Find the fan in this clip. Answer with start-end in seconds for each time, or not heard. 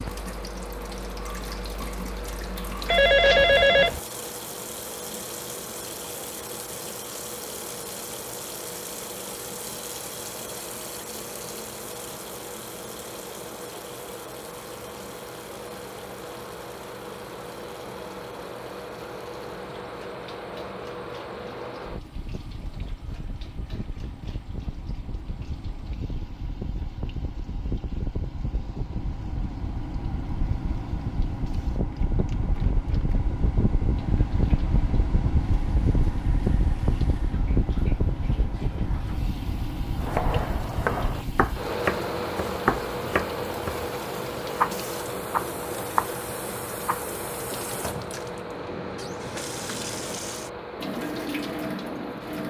0.0-52.4.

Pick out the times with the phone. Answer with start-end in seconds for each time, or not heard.
2.9-4.0.